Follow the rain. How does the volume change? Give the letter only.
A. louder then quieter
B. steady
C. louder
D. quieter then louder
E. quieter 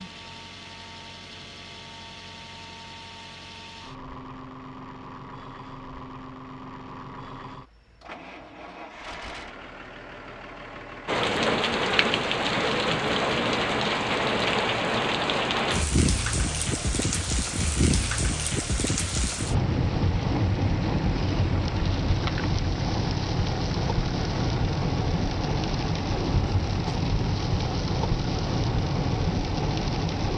B.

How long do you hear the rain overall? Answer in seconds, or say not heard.
19 s.